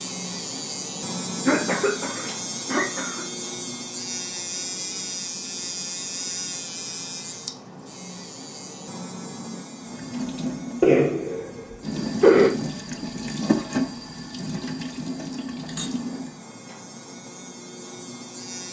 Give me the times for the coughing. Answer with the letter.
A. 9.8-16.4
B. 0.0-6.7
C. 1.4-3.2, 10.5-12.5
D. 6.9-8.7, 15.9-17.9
C.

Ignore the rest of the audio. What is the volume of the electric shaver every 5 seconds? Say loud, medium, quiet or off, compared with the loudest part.
loud, loud, quiet, medium.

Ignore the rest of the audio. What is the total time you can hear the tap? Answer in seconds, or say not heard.
7 s.